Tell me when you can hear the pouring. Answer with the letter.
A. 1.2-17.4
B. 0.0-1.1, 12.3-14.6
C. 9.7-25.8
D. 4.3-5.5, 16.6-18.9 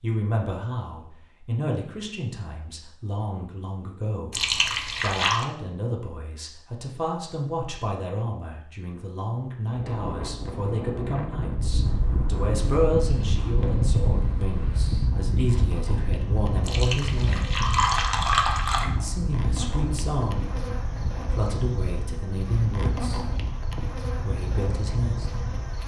D.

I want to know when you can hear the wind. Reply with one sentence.
You can hear the wind from 9.7 to 25.8 s.